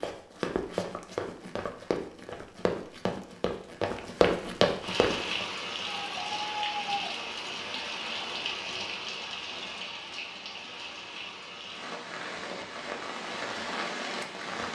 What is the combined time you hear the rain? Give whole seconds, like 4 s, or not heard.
10 s.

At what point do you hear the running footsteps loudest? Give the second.
4 s.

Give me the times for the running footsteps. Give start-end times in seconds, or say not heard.
0.0-5.5.